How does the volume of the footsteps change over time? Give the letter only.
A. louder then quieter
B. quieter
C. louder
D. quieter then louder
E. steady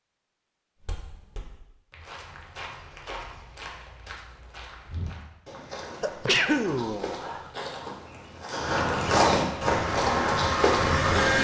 C.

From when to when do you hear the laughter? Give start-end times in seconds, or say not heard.
not heard.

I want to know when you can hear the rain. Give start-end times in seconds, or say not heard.
not heard.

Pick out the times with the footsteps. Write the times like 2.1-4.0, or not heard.
0.8-11.3.